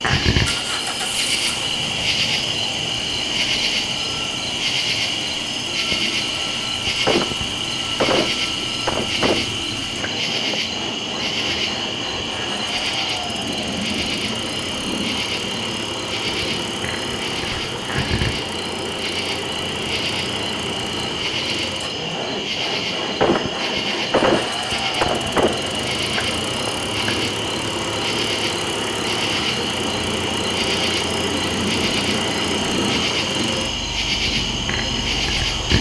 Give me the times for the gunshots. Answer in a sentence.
You can hear the gunshots from 7.0 to 10.6 s and from 23.2 to 27.1 s.